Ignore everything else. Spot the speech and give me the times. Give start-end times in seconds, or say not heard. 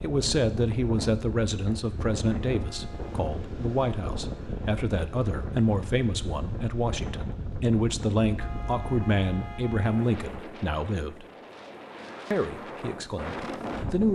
0.0-11.2, 12.3-14.0.